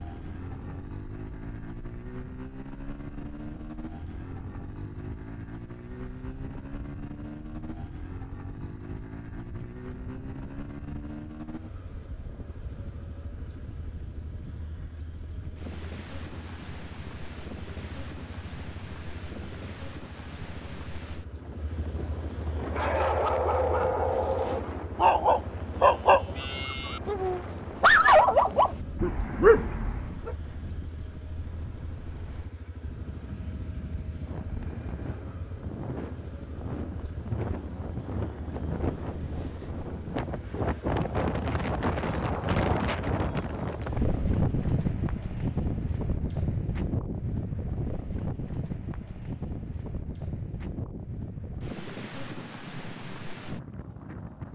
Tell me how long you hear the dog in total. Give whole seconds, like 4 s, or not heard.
8 s.